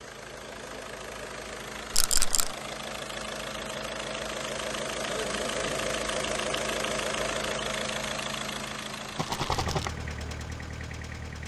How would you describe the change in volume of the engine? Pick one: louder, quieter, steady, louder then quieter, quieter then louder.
louder then quieter.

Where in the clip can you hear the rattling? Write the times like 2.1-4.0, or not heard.
1.9-2.5, 9.2-9.9.